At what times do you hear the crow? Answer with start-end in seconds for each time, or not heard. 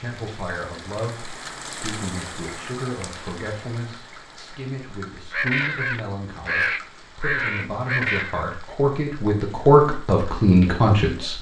5.3-8.4.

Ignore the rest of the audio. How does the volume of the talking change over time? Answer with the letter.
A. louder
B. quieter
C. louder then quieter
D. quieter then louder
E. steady
A.